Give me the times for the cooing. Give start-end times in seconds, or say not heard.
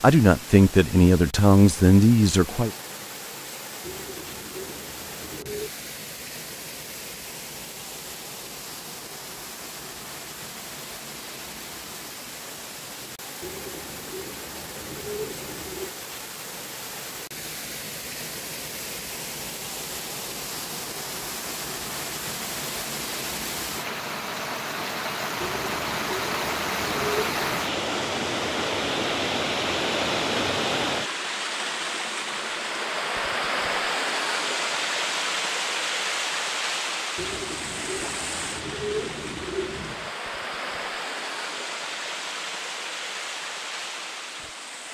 3.8-5.7, 13.4-15.9, 25.4-27.7, 37.1-40.1.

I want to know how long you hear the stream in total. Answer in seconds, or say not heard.
45 s.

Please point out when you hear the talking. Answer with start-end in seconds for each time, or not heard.
0.0-2.7.